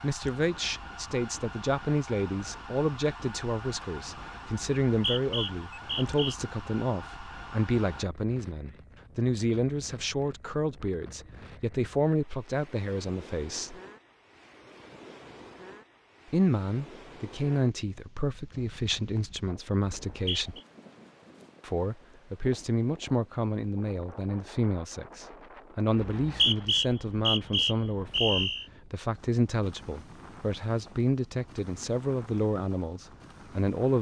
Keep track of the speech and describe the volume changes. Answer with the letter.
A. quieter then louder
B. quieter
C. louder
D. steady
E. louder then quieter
D.